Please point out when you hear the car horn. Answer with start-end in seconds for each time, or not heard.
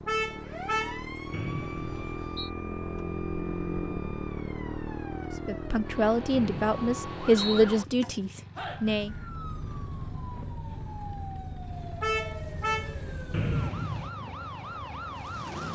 0.1-1.1, 12.0-12.9.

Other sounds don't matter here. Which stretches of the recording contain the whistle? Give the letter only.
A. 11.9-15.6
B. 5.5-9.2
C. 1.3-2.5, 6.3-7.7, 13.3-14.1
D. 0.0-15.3
C.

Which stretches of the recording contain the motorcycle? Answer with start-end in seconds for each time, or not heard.
0.0-15.3.